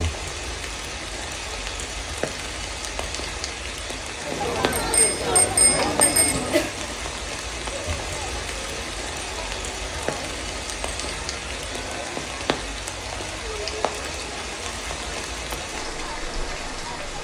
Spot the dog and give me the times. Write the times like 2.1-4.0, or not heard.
not heard.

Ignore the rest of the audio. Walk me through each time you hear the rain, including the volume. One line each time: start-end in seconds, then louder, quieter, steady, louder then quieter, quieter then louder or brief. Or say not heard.
0.0-17.1 steady.